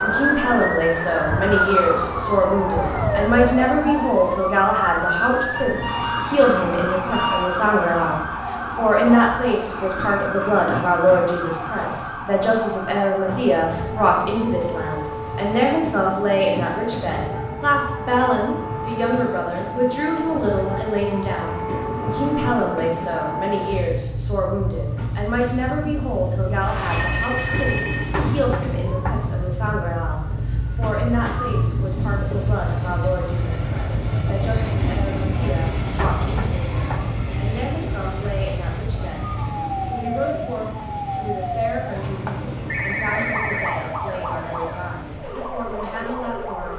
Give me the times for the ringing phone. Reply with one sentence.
The ringing phone can be heard from 5.5 to 7.5 s, from 26.6 to 28.4 s and from 42.0 to 43.9 s.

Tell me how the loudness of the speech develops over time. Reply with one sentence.
The volume of the speech goes down.